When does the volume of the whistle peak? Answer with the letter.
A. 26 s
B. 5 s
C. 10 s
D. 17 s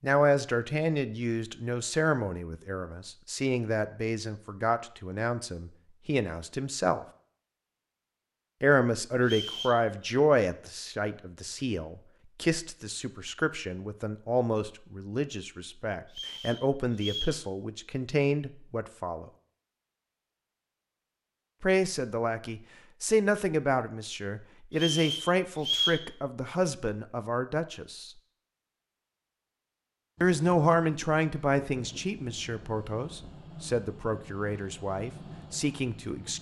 A.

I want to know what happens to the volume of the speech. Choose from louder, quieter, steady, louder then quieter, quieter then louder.
steady.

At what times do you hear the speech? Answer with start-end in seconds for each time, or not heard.
0.0-7.0, 8.6-19.3, 21.6-28.1, 30.2-36.3.